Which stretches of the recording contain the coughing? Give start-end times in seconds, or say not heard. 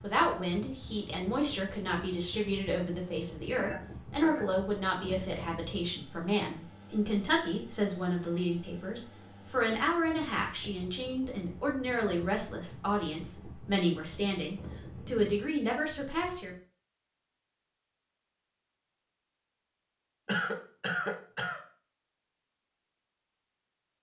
3.5-4.5, 20.2-21.6.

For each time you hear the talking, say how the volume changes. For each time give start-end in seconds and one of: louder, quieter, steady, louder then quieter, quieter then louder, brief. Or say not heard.
0.0-16.5 steady.